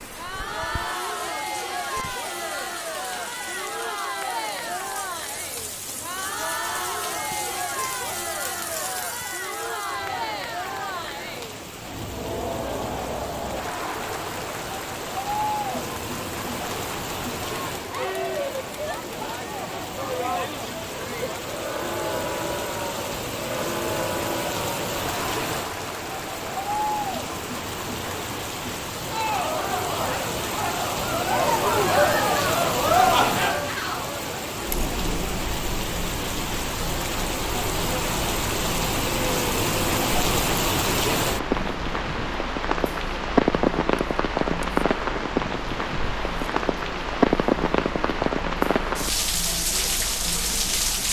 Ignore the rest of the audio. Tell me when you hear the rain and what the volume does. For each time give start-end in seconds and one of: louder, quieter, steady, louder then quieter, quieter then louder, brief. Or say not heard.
0.0-51.0 louder.